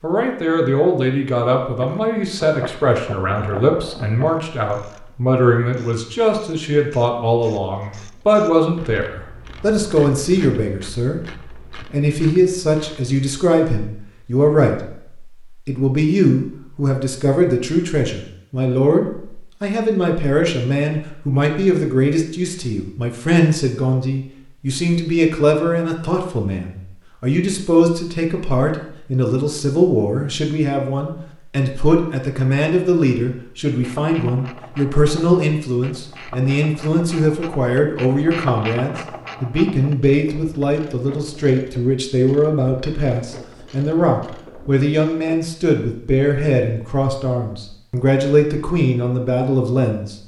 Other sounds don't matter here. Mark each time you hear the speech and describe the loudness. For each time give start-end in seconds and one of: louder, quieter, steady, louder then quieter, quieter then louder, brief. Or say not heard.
0.0-50.1 steady.